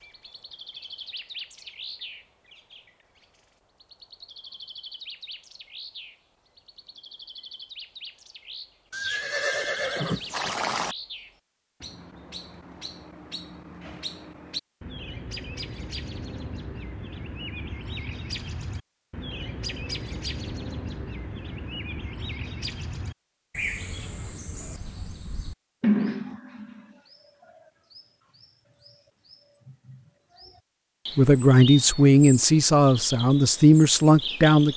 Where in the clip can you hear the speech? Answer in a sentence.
You can hear the speech from 31.1 to 34.7 s.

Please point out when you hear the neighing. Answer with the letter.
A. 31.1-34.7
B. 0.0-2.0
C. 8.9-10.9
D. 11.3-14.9
C.